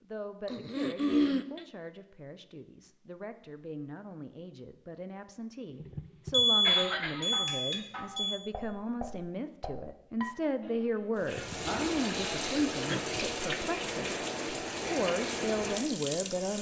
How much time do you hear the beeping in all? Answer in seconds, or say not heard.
2 s.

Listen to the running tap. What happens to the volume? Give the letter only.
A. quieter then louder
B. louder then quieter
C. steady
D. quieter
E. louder
C.